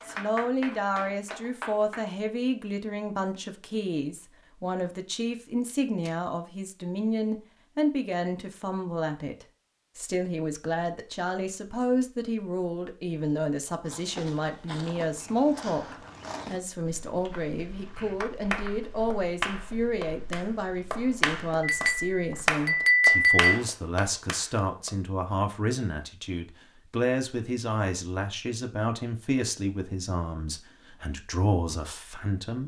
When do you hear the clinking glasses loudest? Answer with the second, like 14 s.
23 s.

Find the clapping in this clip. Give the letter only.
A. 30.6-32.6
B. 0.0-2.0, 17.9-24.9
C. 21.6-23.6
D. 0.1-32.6
B.